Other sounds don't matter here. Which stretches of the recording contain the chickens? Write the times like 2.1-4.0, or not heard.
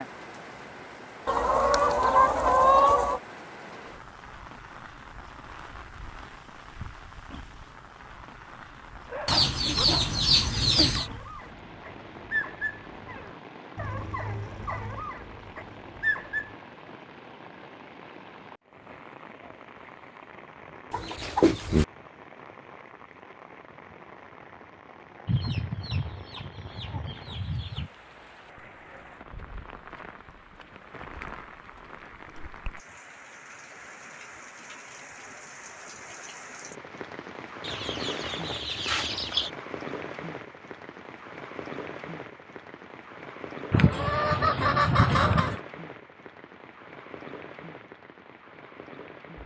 1.2-3.2, 9.2-11.1, 20.9-21.9, 25.2-27.9, 37.6-39.5, 43.7-45.6.